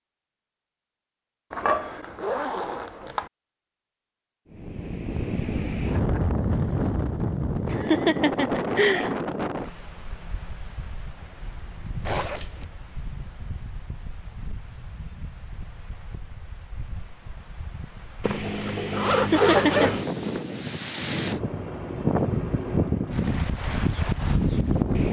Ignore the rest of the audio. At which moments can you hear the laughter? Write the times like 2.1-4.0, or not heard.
7.7-9.1, 19.1-19.9.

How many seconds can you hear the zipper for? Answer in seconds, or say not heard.
4 s.